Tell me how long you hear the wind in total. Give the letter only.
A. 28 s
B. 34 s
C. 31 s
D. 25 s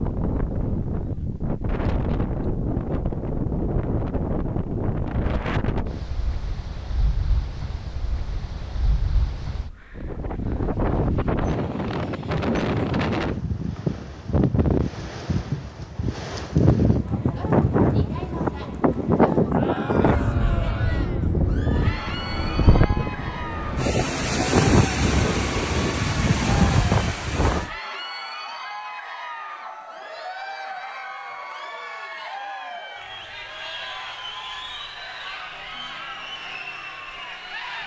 A.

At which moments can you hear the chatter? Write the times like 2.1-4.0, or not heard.
16.9-37.8.